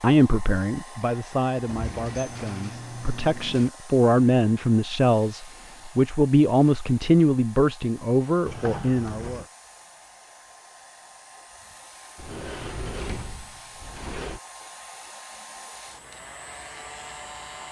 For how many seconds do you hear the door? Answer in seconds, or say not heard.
5 s.